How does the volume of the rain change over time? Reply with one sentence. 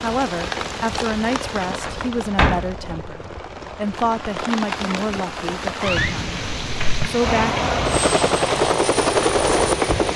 The volume of the rain goes down, then up.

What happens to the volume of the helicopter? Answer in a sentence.
The volume of the helicopter goes up.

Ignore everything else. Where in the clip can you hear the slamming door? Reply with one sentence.
The slamming door can be heard from 1.9 to 3.0 s and from 5.8 to 7.1 s.